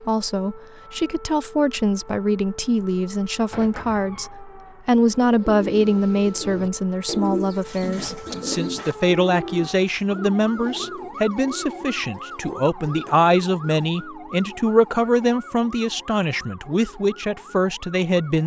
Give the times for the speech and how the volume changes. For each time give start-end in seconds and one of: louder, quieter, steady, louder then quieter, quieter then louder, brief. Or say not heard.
0.0-18.4 steady.